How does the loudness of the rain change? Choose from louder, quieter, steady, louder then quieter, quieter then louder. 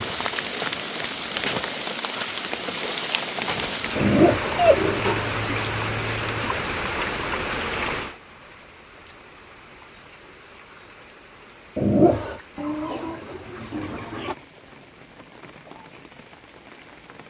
quieter.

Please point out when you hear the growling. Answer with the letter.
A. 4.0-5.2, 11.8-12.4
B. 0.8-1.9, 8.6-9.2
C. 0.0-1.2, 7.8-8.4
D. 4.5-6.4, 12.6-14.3
A.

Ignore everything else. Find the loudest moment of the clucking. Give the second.
5 s.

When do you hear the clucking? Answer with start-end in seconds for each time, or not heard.
4.5-6.4, 12.6-14.3.